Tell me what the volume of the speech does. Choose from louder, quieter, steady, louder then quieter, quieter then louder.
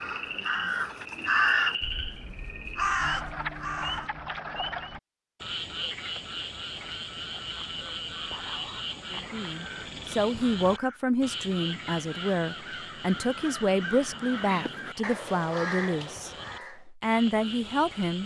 steady.